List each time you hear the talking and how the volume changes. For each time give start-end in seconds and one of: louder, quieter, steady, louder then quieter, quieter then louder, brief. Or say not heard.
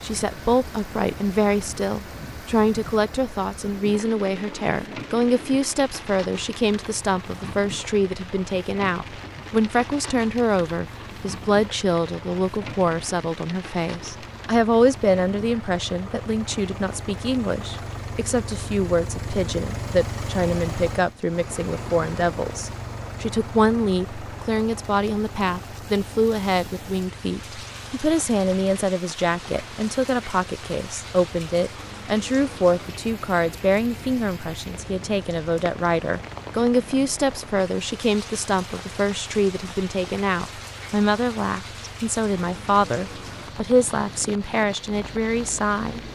0.0-46.0 steady.